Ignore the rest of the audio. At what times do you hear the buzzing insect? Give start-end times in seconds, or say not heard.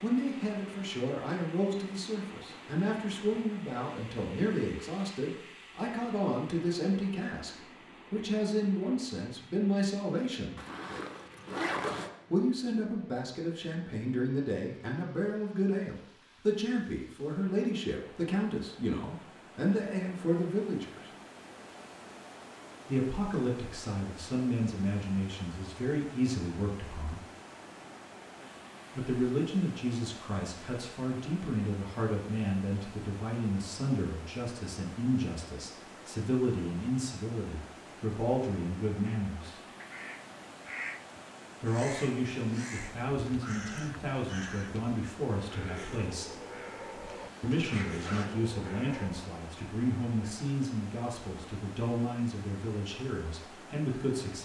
not heard.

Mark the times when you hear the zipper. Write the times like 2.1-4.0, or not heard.
10.6-12.1, 47.1-48.4.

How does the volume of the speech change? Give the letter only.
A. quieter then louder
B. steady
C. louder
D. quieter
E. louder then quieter
B.